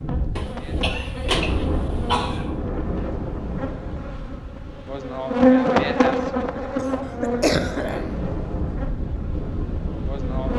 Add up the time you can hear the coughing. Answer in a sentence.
You can hear the coughing for 4 seconds altogether.